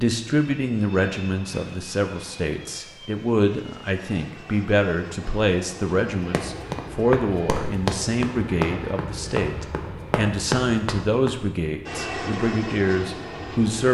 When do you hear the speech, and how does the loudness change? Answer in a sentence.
You can hear the speech from 0.0 to 13.8 s, at a steady volume.